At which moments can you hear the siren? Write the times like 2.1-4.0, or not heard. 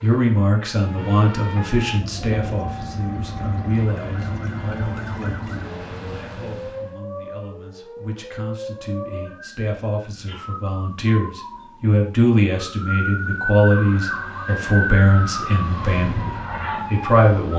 0.0-17.4.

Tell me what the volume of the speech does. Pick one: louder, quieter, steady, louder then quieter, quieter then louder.
quieter then louder.